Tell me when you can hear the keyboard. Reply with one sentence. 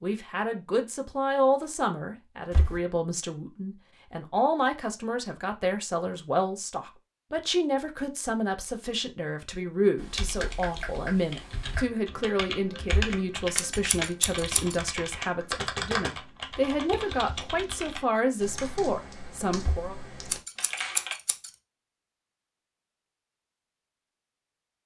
The keyboard can be heard from 9.9 to 21.1 s.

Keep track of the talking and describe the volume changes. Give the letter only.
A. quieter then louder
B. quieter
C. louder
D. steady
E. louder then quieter
D.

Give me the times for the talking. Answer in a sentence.
The talking can be heard from 0.0 to 19.9 s.